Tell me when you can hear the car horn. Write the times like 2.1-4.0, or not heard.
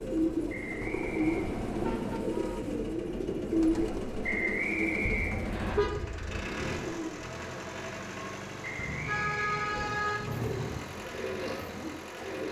1.0-2.2, 5.0-6.5, 8.8-10.8.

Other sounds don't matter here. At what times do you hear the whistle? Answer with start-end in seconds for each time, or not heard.
0.5-1.4, 4.2-5.8, 8.6-10.2.